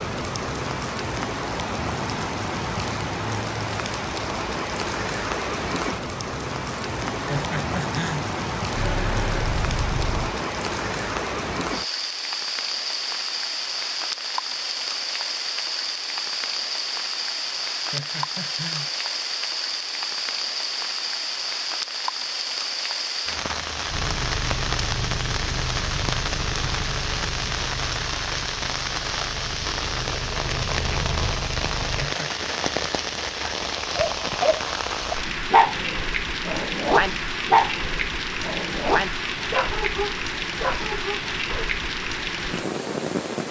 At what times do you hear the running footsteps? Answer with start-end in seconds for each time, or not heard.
not heard.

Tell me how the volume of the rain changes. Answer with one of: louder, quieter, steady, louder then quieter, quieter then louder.
steady.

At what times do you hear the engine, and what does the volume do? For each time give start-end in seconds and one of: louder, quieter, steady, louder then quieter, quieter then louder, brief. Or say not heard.
8.7-10.3 brief
23.9-32.1 quieter then louder.